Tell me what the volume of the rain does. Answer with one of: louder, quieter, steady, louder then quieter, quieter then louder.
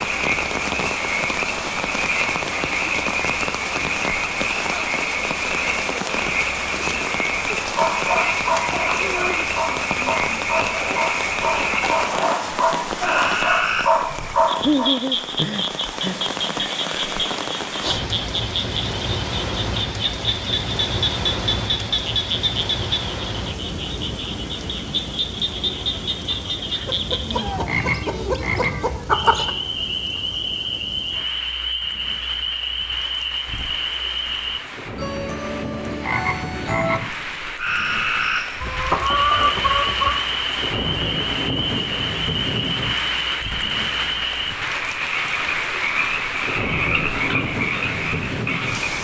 quieter then louder.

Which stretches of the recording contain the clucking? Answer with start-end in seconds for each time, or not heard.
10.6-12.5, 26.9-29.5, 38.6-40.1.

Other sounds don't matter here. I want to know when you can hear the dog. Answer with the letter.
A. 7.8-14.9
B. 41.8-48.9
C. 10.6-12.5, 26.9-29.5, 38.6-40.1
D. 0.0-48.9
A.